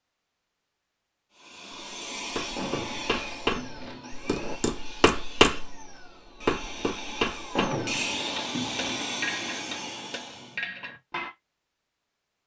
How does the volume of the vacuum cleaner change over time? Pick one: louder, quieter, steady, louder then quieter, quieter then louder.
quieter then louder.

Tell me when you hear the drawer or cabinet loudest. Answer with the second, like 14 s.
8 s.